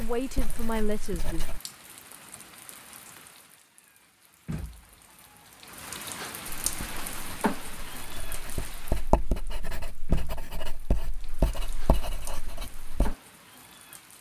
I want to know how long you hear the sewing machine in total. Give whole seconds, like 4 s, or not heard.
not heard.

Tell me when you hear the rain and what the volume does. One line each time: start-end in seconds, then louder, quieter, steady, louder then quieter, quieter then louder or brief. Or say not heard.
0.0-14.1 louder then quieter.